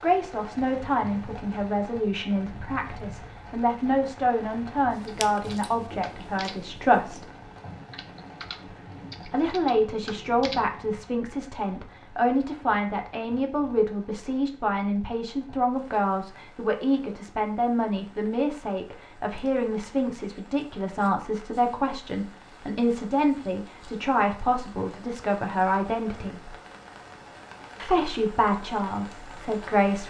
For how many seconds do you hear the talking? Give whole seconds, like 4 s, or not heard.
27 s.